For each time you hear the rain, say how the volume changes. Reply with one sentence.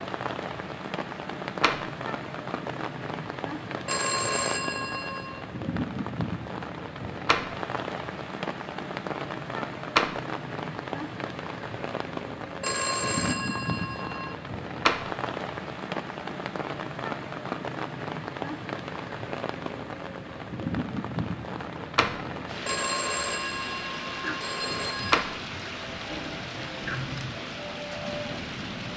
You can hear the rain from 0.0 to 28.9 s, at a steady volume.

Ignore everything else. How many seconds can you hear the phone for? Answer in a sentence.
The phone can be heard for 6 seconds in total.